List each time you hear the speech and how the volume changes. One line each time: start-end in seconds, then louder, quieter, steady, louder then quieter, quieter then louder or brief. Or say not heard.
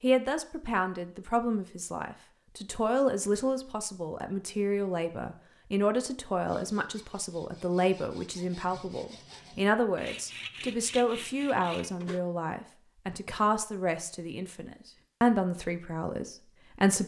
0.0-17.0 steady.